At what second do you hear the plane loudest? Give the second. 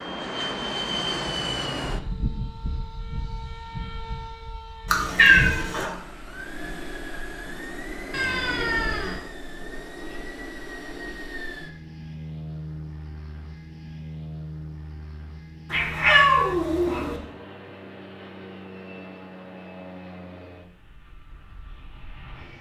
1 s.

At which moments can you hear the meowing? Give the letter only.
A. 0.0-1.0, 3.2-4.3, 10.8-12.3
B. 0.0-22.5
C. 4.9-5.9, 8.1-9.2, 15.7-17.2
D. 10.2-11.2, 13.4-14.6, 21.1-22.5
C.